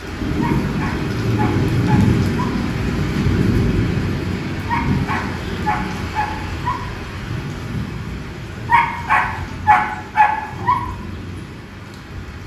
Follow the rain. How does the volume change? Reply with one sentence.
The volume of the rain goes down.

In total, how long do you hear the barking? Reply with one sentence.
The barking can be heard for 6 seconds in total.